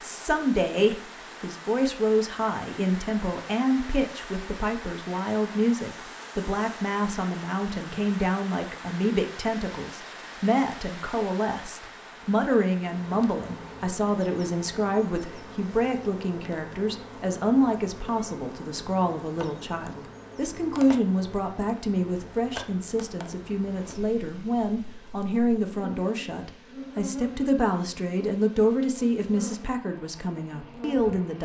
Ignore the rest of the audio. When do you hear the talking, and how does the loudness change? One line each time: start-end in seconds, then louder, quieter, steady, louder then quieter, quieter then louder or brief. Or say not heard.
0.0-31.4 steady.